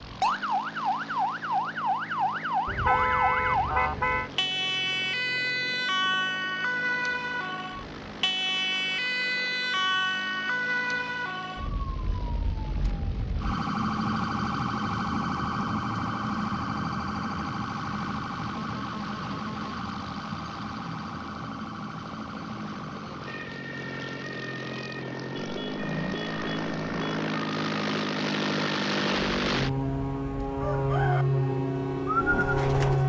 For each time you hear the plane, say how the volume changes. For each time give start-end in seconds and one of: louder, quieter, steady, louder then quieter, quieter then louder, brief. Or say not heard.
0.0-33.0 louder.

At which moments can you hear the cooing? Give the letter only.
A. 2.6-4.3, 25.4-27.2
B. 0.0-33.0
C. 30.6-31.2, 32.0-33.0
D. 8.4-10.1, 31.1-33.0
C.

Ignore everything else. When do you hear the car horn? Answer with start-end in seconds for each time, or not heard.
2.6-4.3, 25.4-27.2.